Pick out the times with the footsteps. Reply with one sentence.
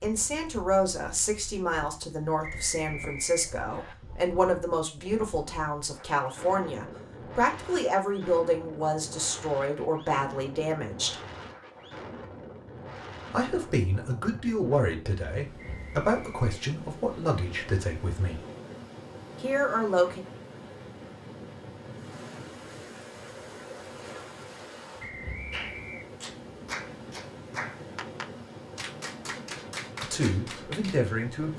The footsteps can't be heard in this clip.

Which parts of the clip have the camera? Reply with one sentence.
The camera can't be heard in this clip.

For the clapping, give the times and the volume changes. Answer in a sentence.
The clapping can be heard from 25.5 to 31.0 s, at a steady volume.